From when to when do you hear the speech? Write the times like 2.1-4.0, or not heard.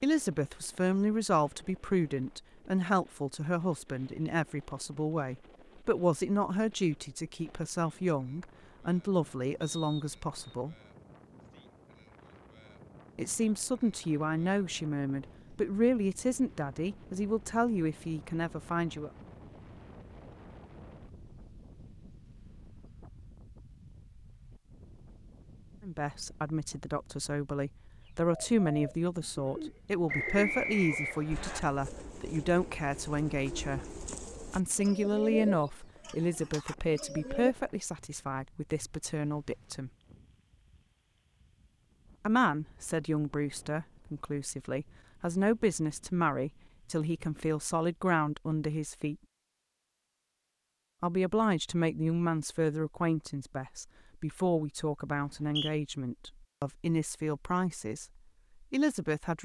0.0-10.8, 13.2-19.1, 25.8-39.9, 42.2-49.1, 51.0-58.0, 58.7-59.4.